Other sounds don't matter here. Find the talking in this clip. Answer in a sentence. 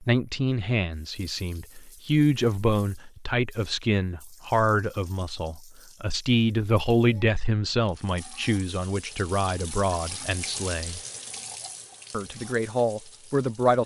The talking can be heard from 0.0 to 11.0 s and from 12.1 to 13.8 s.